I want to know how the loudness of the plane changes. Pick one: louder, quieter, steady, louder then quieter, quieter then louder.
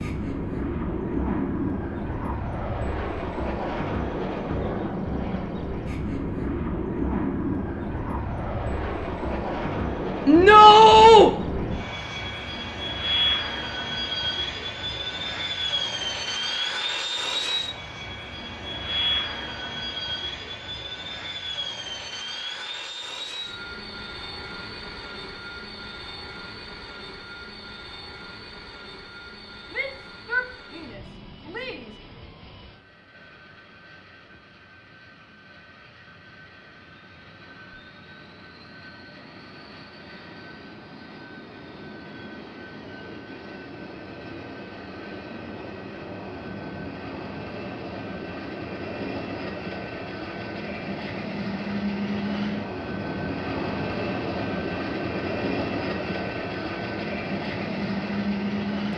quieter then louder.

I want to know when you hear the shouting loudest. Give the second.
11 s.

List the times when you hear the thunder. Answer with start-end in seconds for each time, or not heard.
not heard.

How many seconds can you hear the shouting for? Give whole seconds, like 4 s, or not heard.
3 s.